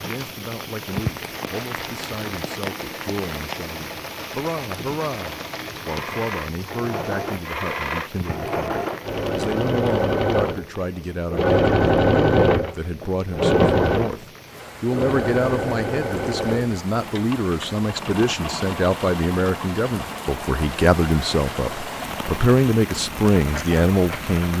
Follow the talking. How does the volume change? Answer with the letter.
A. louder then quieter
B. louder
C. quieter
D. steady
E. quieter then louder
B.